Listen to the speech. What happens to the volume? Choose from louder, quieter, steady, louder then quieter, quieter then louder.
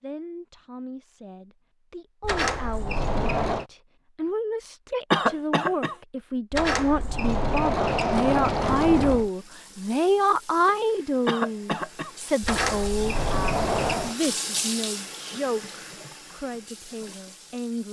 louder then quieter.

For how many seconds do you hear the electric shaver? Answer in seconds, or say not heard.
not heard.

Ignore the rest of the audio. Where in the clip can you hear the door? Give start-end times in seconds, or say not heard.
2.2-3.6, 6.5-9.3, 12.4-14.2.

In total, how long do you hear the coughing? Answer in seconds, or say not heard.
2 s.